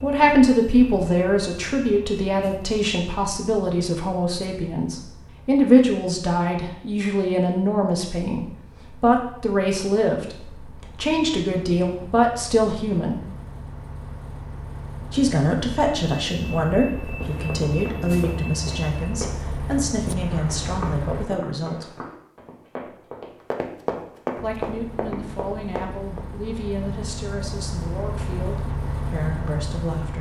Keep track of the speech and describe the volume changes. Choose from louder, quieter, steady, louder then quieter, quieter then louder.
quieter.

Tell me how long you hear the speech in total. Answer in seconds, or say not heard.
26 s.